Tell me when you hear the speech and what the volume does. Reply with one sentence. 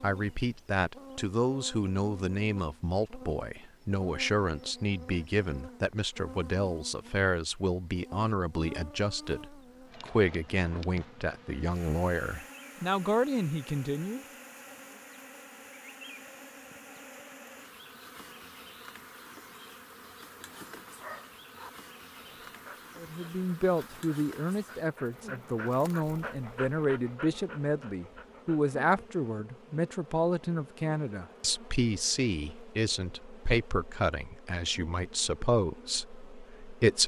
The speech can be heard from 0.0 to 14.2 s, at a steady volume; and from 22.9 to 37.0 s, at a steady volume.